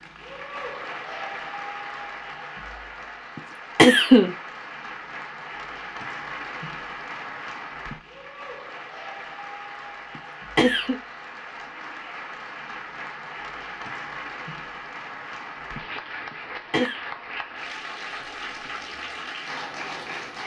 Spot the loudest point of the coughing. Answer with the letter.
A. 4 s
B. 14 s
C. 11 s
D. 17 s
A.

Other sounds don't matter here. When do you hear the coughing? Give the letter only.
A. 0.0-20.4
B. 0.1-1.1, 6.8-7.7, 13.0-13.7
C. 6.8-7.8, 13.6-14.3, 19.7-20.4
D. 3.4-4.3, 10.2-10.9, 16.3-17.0
D.